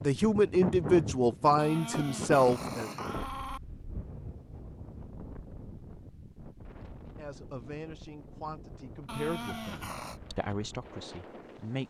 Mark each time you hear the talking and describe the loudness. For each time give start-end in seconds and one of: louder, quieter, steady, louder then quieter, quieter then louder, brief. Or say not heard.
0.0-2.9 brief
7.2-11.8 louder then quieter.